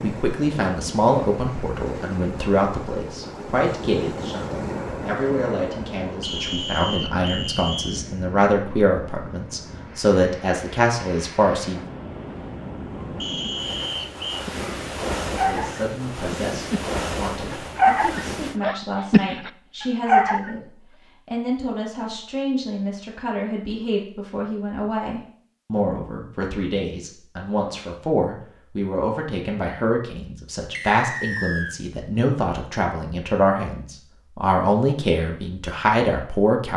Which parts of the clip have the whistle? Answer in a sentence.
You can hear the whistle from 6.2 to 8.0 s, from 13.2 to 14.4 s and from 30.7 to 31.8 s.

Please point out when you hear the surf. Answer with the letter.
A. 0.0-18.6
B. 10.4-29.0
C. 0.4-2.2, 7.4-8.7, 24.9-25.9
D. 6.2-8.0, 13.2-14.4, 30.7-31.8
A.